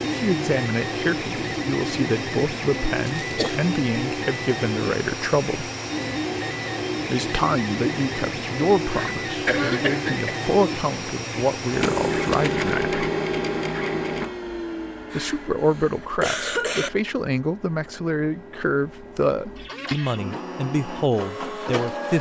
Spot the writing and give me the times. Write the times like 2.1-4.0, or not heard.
not heard.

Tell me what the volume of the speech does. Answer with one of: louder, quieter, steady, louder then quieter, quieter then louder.
steady.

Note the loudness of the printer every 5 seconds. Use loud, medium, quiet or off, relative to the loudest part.
loud, loud, loud, quiet, medium.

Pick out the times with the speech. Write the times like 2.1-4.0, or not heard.
0.0-5.7, 7.1-12.9, 15.2-22.1.